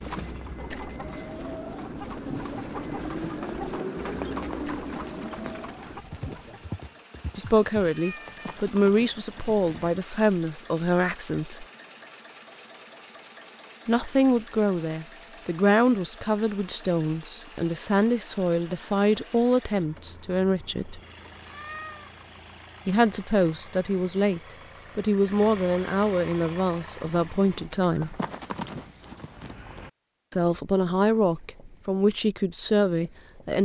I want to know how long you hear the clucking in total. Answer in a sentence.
You can hear the clucking for 7 seconds altogether.